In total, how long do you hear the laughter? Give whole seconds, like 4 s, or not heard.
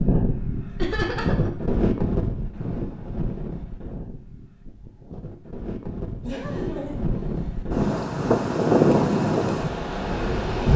2 s.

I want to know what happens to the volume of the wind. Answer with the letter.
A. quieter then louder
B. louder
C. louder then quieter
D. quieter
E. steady
A.